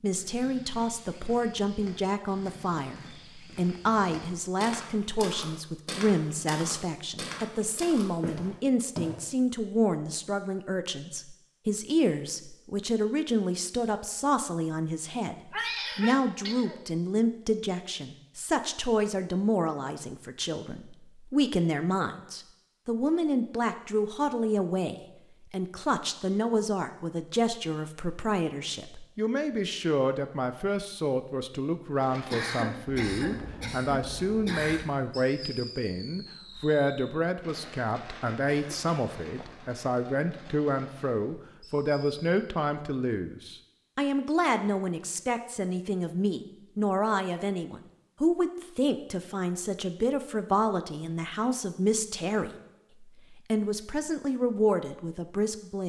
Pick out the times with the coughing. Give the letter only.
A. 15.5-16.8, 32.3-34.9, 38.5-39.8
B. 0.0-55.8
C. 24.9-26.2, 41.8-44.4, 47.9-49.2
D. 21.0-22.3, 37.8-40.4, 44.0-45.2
A.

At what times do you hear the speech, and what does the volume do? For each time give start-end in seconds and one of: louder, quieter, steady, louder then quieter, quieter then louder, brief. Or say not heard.
0.0-55.8 steady.